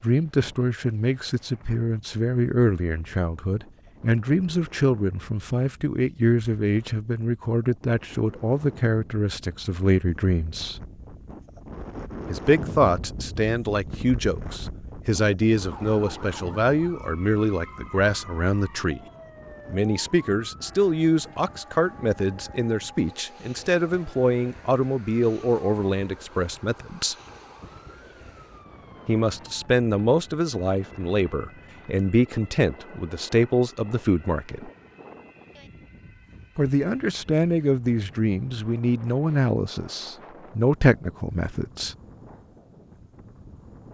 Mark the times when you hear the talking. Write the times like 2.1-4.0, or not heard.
0.0-10.8, 12.2-19.0, 19.6-27.1, 29.1-34.7, 36.5-42.0.